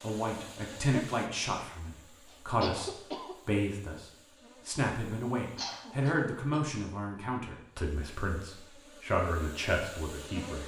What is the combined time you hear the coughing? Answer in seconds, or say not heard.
2 s.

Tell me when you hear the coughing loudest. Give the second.
3 s.